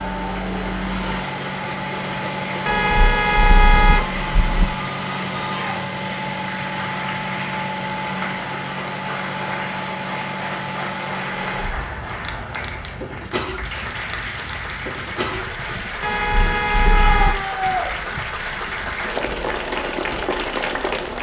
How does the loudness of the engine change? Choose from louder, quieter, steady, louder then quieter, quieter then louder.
quieter.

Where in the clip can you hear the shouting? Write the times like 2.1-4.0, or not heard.
5.3-5.8, 16.9-17.9.